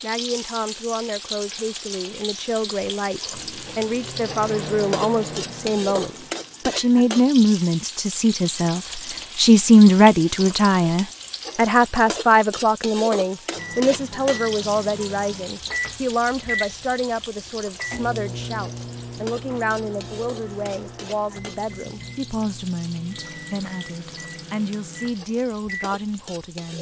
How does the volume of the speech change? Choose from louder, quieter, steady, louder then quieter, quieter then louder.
louder then quieter.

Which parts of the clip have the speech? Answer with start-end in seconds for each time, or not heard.
0.0-26.7.